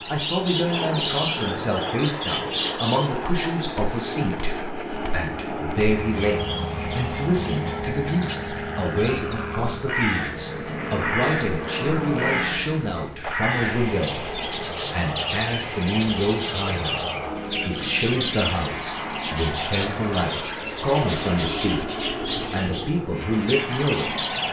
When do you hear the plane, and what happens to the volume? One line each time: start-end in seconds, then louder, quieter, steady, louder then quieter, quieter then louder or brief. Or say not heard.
0.0-24.4 steady.